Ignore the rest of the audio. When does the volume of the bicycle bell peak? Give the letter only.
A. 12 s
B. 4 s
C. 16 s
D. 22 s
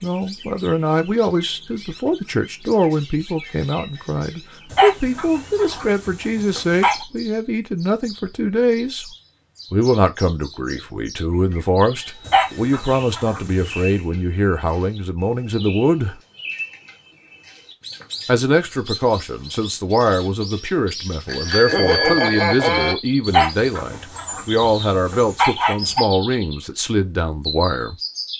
D.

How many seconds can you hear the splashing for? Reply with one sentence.
You can't hear the splashing here.